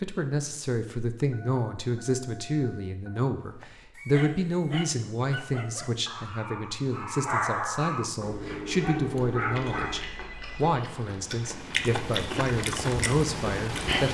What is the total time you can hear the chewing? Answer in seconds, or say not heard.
5 s.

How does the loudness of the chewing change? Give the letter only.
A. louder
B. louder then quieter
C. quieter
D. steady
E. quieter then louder
A.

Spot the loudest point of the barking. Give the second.
7 s.